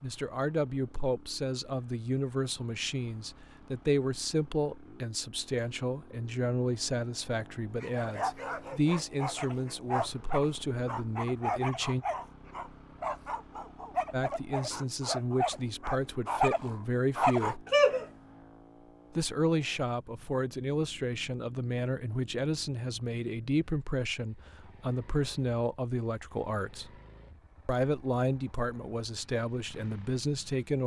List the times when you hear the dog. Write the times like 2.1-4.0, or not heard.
7.8-18.1.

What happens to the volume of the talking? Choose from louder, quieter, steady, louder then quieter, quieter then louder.
steady.